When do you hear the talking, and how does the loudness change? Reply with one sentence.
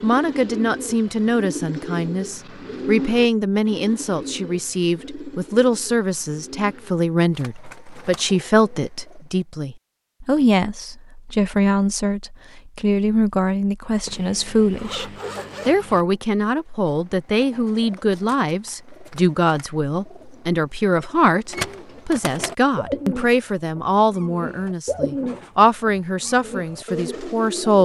The talking can be heard from 0.0 to 27.7 s, at a steady volume.